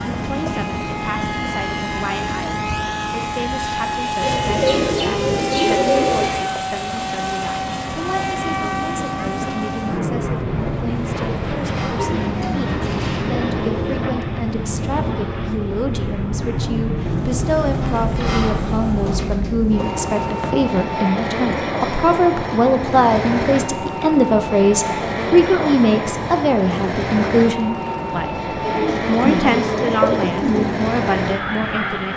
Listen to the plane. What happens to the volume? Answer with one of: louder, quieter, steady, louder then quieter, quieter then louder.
steady.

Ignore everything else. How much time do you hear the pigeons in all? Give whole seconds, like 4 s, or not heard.
8 s.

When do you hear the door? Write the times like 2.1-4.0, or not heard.
10.5-12.2, 17.1-19.2.